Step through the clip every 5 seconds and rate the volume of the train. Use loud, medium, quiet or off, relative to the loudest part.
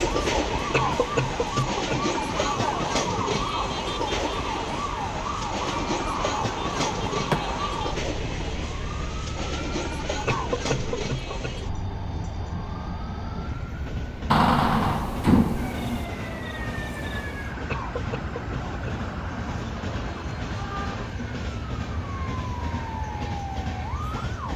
loud, loud, medium, medium, medium.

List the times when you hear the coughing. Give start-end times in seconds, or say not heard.
0.7-2.1, 10.2-11.6, 17.6-19.1.